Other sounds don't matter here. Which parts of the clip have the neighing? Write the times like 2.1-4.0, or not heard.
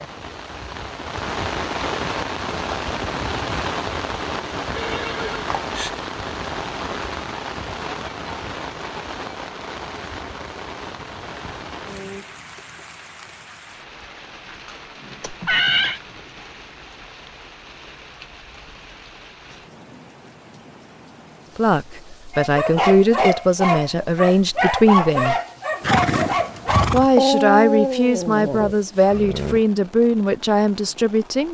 4.8-6.0, 15.2-16.0, 25.8-27.1.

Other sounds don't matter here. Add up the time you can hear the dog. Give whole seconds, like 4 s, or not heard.
7 s.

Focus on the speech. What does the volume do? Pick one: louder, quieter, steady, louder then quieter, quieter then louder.
steady.